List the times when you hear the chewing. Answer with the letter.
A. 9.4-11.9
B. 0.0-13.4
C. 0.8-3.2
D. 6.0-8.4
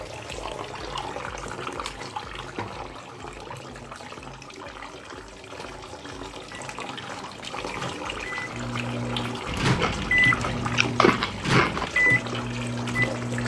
A.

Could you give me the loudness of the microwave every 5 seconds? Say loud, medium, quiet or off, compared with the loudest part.
off, medium, loud.